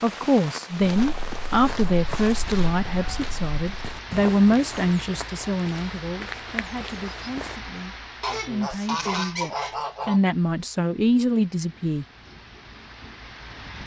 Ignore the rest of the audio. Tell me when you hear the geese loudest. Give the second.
9 s.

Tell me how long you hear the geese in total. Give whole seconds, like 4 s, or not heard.
4 s.